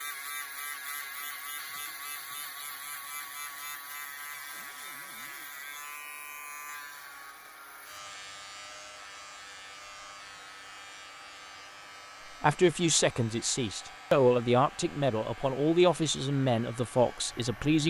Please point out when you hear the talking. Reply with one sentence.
You can hear the talking from 12.4 to 17.8 s.